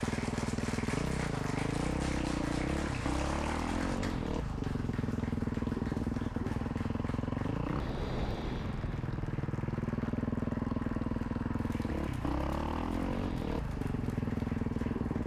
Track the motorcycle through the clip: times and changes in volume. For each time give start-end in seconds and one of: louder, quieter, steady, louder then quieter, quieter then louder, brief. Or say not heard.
0.0-15.2 steady.